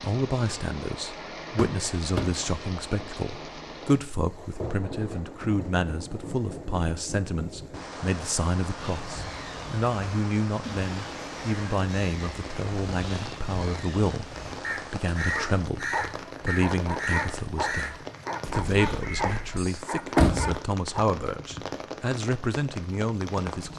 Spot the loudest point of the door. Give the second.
20 s.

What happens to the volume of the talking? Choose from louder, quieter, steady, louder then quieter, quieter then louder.
steady.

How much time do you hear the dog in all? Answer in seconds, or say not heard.
6 s.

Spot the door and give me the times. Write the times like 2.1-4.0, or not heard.
1.6-2.4, 19.6-20.6.